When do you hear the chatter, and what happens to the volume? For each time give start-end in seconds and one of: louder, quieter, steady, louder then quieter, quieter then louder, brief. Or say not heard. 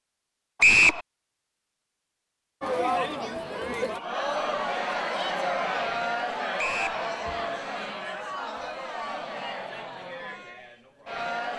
2.6-11.5 quieter.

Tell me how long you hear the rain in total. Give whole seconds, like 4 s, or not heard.
not heard.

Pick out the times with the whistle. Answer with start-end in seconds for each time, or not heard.
0.6-1.0, 6.5-7.0.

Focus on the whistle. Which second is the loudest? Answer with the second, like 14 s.
1 s.